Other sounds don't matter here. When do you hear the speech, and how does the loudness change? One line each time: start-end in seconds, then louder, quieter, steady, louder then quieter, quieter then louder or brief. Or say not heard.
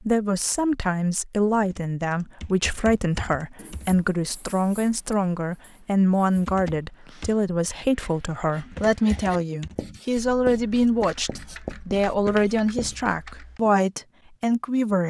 0.0-15.0 steady.